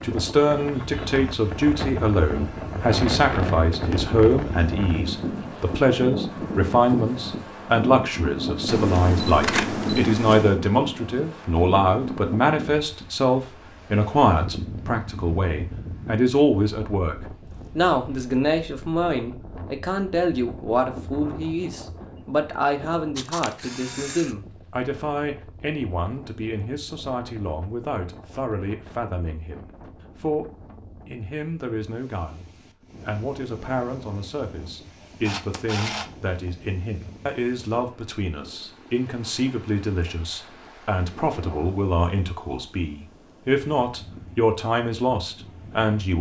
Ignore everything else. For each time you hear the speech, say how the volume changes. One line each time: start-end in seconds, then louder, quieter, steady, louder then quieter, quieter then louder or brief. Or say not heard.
0.0-17.1 steady
17.8-32.5 quieter
33.0-46.1 louder.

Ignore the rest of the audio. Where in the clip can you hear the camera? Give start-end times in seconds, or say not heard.
8.7-10.6, 23.1-24.4, 35.2-36.5.